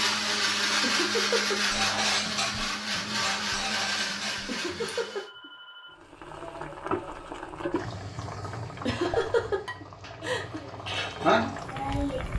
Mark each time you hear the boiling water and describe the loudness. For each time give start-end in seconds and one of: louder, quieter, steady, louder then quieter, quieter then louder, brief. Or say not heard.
6.0-12.3 quieter then louder.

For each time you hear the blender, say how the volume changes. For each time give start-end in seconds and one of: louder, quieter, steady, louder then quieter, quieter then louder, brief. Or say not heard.
0.0-5.3 quieter.